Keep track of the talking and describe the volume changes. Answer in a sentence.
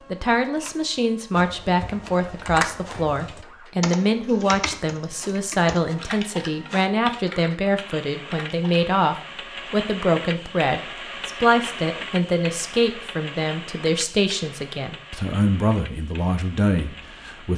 The volume of the talking stays about the same.